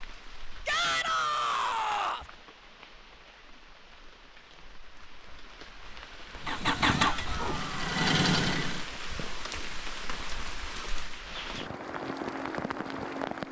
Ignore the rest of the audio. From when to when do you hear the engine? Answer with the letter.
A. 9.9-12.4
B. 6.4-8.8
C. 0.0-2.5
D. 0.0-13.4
B.